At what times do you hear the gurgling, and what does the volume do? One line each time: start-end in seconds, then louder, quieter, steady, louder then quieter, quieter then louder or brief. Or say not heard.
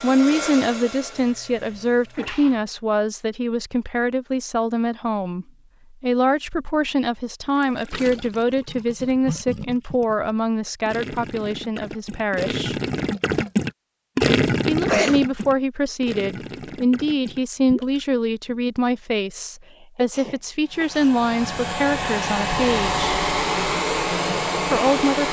7.5-18.6 louder then quieter.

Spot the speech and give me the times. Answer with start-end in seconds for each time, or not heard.
0.0-12.8, 14.7-23.1, 24.6-25.2.